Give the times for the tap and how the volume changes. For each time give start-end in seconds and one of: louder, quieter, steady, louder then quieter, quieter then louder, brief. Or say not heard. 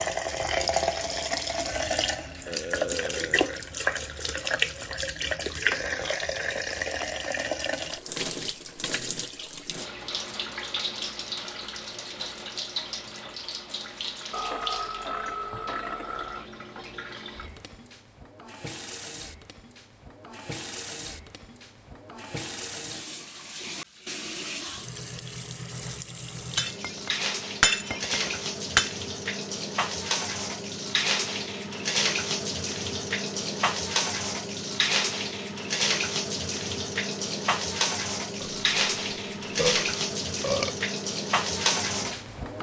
0.0-42.5 quieter then louder.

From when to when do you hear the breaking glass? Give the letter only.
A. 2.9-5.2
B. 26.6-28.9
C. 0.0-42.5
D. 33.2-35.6
B.